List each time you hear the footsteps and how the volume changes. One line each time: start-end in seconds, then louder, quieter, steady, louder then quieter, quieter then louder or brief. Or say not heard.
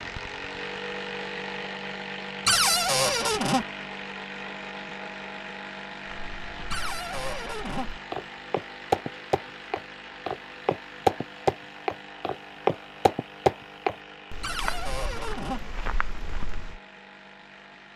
6.0-16.8 louder then quieter.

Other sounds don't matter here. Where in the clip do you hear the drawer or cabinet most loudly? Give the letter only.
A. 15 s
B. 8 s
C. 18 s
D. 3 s
D.